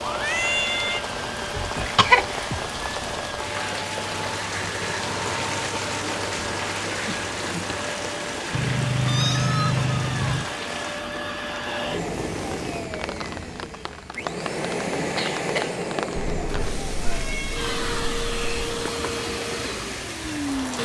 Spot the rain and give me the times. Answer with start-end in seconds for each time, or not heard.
0.0-20.7.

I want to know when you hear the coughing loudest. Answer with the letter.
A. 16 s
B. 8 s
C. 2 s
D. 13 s
C.